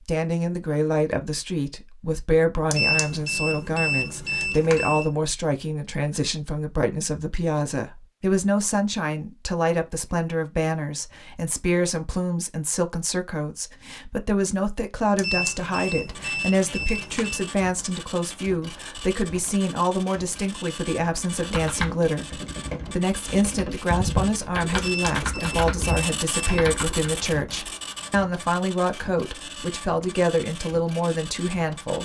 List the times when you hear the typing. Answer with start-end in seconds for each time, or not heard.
21.3-27.3.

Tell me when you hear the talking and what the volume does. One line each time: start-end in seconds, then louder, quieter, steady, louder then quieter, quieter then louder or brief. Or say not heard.
0.1-32.0 steady.